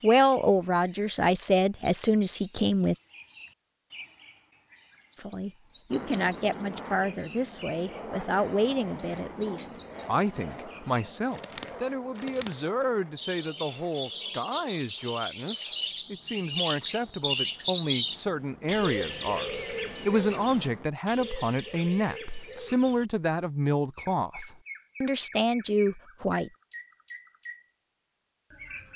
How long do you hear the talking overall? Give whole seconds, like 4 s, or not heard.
24 s.